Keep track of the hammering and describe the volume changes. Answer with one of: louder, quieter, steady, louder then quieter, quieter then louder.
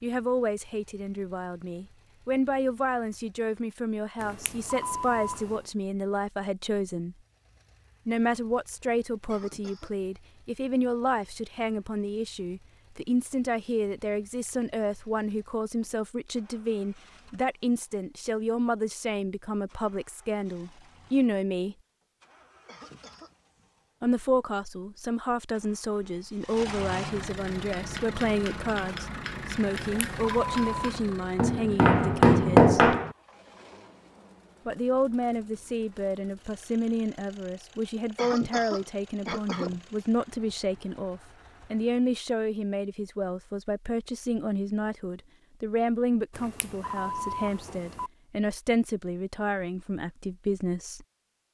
louder.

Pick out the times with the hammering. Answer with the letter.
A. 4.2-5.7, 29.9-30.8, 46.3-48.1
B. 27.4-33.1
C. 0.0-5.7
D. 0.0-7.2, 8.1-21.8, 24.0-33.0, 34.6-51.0
B.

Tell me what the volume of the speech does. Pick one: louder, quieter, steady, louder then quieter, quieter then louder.
steady.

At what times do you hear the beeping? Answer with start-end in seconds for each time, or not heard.
4.2-5.7, 29.9-30.8, 46.3-48.1.